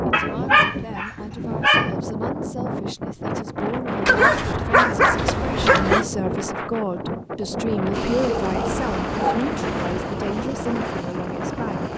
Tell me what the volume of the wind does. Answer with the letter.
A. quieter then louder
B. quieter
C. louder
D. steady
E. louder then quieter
D.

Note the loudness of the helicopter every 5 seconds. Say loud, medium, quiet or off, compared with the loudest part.
off, loud, medium.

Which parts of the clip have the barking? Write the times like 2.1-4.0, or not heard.
0.1-1.9, 4.0-6.0, 8.4-9.4.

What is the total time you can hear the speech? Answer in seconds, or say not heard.
12 s.